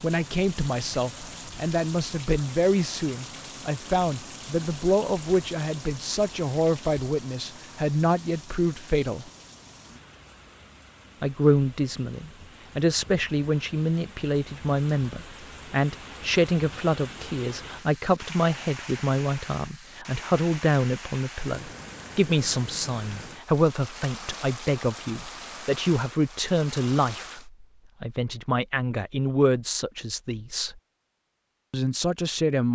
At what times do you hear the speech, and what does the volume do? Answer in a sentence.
The speech can be heard from 0.0 to 9.3 s, at a steady volume; from 11.2 to 30.8 s, at a steady volume; and briefly from 31.7 to 32.7 s.